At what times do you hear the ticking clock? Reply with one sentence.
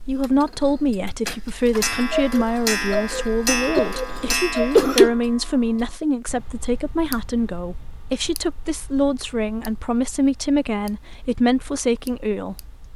You can hear the ticking clock from 0.0 to 12.9 s.